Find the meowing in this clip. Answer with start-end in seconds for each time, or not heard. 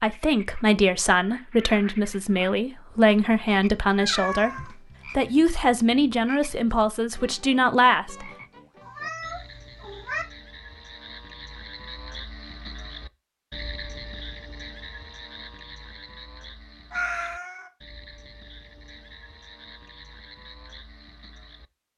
4.0-5.3, 8.8-10.2, 16.9-17.7.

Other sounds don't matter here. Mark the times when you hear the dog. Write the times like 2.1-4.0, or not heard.
not heard.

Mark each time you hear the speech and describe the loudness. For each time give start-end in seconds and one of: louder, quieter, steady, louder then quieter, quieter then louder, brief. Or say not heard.
0.0-8.3 steady.